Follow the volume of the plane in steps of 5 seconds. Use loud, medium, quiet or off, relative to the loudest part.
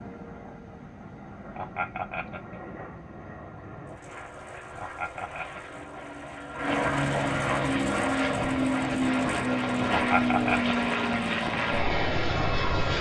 quiet, loud, loud.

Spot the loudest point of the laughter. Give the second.
10 s.